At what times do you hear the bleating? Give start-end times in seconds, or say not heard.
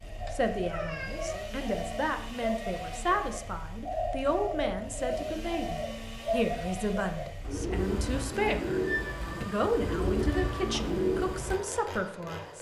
not heard.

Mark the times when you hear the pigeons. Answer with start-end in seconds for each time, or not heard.
0.1-11.6.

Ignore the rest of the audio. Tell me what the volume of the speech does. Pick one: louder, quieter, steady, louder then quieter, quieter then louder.
steady.